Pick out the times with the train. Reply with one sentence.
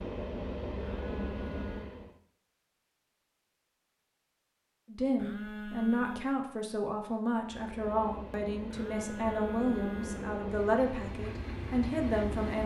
You can hear the train from 0.0 to 2.1 s and from 7.3 to 12.6 s.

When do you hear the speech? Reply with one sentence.
You can hear the speech from 4.8 to 12.6 s.